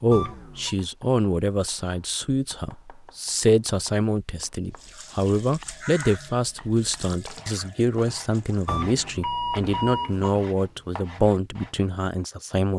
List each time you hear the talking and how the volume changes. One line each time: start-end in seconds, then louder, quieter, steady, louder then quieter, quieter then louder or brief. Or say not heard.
0.0-12.7 steady.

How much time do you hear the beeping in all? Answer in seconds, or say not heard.
2 s.